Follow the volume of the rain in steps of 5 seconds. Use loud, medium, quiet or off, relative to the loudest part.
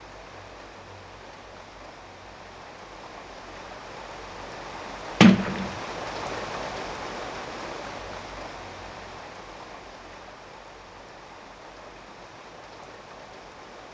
medium, loud, medium.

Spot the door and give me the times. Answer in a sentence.
You can hear the door from 5.2 to 5.7 s.